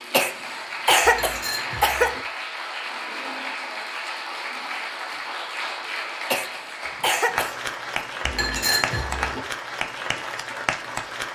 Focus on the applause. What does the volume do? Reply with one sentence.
The volume of the applause stays about the same.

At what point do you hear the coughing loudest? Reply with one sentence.
The volume of the coughing peaks at 1 second.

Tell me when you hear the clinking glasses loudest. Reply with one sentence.
The volume of the clinking glasses peaks at 9 seconds.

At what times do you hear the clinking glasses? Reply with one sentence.
The clinking glasses can be heard from 1.0 to 2.2 s and from 8.2 to 9.4 s.